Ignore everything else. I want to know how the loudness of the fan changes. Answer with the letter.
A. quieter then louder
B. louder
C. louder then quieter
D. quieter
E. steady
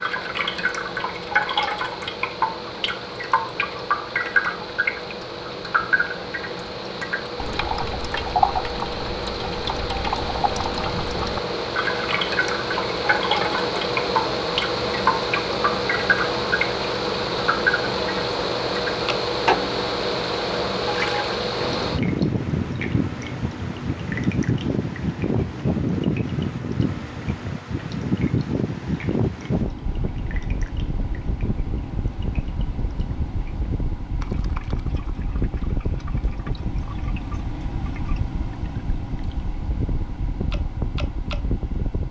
C.